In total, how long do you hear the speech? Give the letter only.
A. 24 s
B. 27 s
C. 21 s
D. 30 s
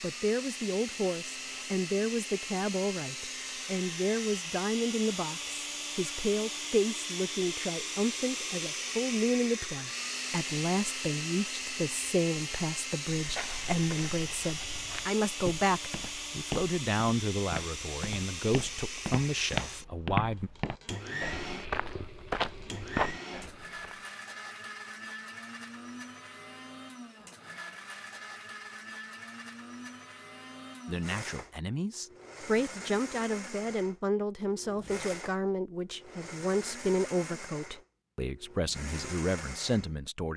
D.